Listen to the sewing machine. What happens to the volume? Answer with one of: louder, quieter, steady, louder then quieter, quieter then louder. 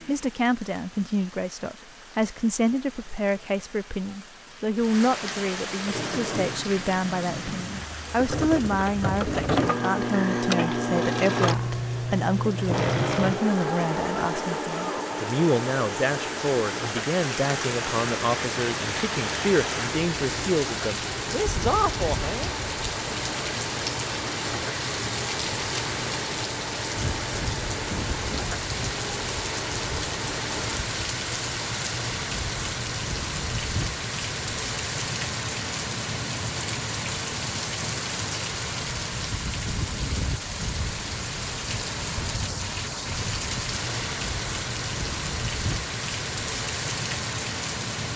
quieter.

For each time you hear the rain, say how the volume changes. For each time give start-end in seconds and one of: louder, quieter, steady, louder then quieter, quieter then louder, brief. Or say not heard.
0.0-48.1 louder.